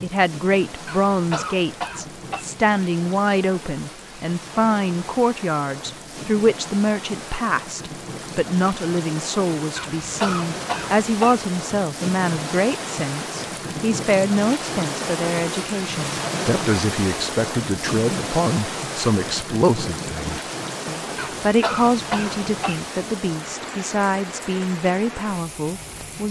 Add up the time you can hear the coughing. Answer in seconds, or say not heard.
5 s.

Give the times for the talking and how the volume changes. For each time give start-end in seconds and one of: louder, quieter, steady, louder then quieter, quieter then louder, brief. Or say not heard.
0.0-26.2 steady.